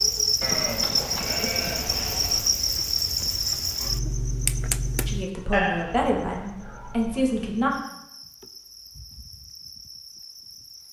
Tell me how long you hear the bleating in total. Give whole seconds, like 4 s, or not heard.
4 s.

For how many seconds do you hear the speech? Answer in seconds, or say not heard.
3 s.